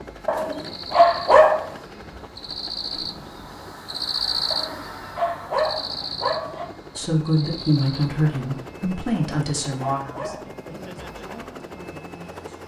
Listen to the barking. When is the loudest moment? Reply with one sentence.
The loudest moment of the barking is at 1 second.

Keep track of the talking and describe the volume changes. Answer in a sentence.
The volume of the talking goes down.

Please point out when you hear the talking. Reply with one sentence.
The talking can be heard from 7.0 to 12.6 s.